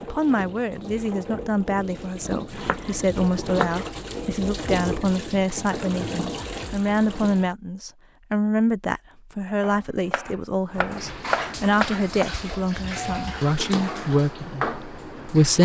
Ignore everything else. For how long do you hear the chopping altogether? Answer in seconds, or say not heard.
4 s.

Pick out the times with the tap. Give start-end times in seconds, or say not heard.
0.0-7.5, 10.7-15.6.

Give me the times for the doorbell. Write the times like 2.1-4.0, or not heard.
12.8-13.4.